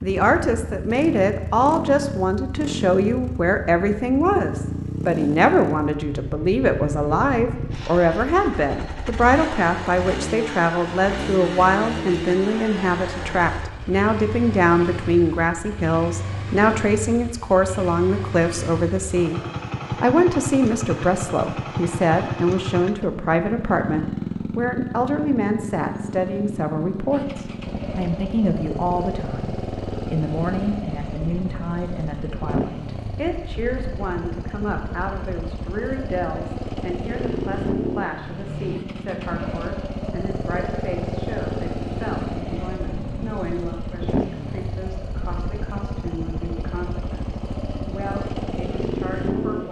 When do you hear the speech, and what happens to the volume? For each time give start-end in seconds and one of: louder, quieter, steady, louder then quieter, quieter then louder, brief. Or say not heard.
0.0-19.4 steady
20.0-49.6 quieter.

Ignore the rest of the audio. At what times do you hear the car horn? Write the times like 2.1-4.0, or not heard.
not heard.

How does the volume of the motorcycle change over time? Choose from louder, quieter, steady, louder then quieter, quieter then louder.
steady.